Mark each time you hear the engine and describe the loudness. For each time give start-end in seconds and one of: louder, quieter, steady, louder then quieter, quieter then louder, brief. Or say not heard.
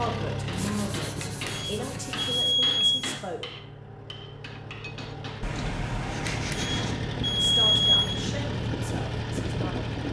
0.0-10.0 quieter then louder.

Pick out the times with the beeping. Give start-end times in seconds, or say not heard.
1.2-3.1, 6.2-8.2.